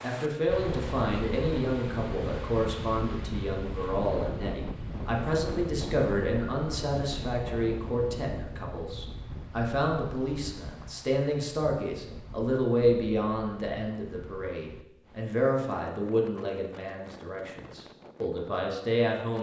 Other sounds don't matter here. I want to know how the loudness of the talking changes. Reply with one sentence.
The volume of the talking stays about the same.